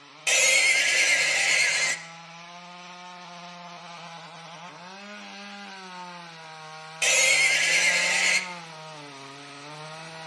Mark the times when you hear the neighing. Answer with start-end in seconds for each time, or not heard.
0.2-1.9, 7.0-8.4.